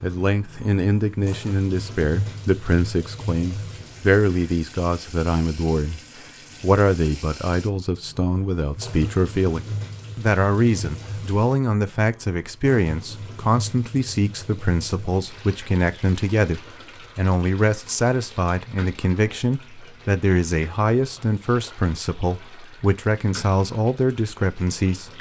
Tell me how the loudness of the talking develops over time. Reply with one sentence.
The loudness of the talking stays about the same.